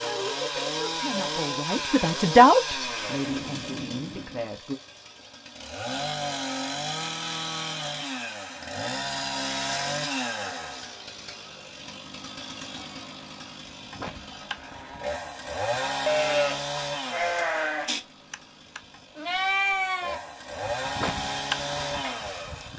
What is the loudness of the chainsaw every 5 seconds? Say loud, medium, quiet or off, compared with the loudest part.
loud, loud, medium, loud, loud.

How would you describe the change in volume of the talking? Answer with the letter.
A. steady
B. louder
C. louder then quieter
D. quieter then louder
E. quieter
C.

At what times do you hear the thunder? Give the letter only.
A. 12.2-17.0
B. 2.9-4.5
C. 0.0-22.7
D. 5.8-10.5
B.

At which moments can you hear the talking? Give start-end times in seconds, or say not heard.
0.0-4.8.